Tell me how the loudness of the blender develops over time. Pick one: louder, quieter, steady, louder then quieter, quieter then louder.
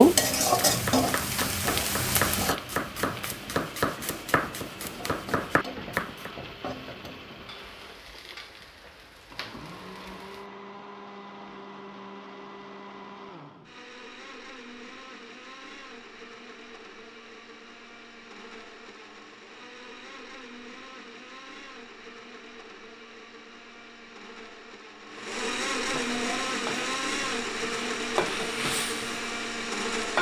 louder.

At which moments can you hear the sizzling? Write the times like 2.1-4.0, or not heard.
0.0-10.5, 25.8-30.1.